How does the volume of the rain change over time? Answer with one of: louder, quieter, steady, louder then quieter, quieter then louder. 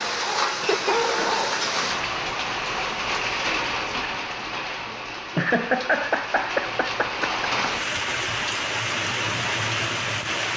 quieter then louder.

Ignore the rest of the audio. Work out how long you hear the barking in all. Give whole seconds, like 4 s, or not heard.
2 s.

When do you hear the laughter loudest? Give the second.
6 s.